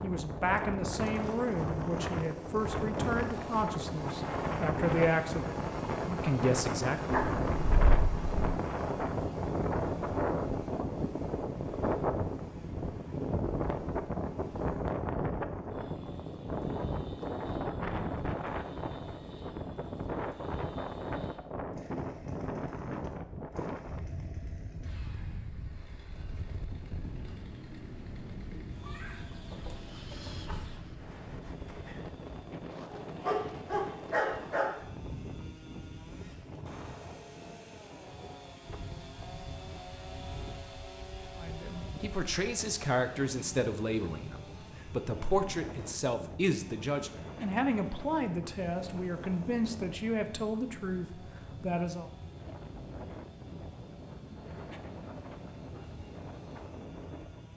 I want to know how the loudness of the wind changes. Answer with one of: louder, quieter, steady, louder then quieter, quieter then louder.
quieter.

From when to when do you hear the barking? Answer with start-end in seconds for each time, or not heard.
7.1-8.3, 32.9-34.8.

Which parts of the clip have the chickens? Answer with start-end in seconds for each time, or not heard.
28.8-30.9.